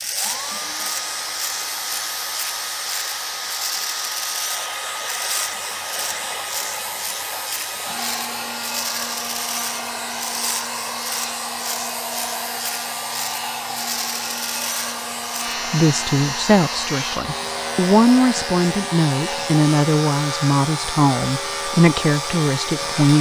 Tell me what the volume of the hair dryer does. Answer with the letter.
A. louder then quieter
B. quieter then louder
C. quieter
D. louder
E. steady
E.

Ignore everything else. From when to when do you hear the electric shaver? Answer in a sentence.
You can hear the electric shaver from 0.0 to 23.1 s.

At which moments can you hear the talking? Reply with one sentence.
The talking can be heard from 15.7 to 23.1 s.